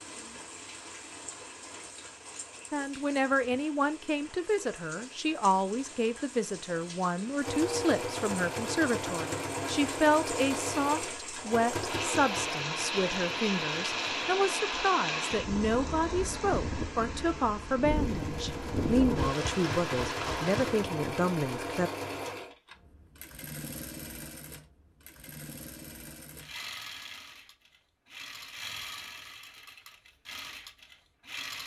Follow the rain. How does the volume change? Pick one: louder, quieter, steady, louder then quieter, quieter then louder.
louder.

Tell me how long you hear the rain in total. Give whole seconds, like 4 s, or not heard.
21 s.